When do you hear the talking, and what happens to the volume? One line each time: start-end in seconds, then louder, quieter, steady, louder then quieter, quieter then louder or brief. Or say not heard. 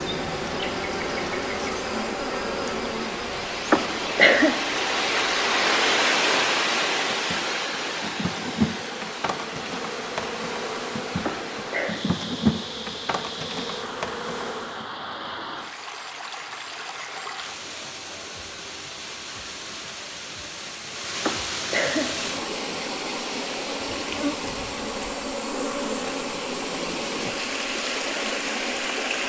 not heard.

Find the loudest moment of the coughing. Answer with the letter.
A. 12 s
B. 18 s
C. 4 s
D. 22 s
C.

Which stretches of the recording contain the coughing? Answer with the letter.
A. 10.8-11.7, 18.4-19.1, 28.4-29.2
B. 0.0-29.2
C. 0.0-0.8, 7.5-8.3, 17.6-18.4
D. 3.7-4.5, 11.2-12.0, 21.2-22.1
D.